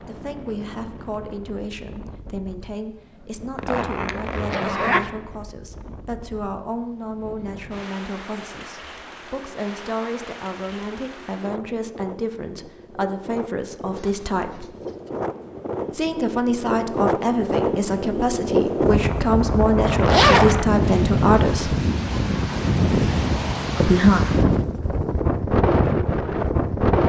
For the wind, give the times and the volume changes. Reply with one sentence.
The wind can be heard from 0.0 to 27.0 s, getting louder.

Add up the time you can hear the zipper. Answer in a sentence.
The zipper can be heard for 3 seconds in total.